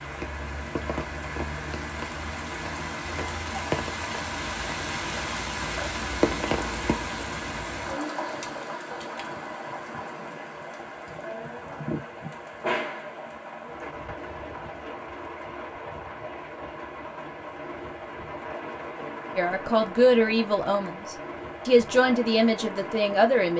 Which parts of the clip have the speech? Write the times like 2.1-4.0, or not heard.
19.4-23.5.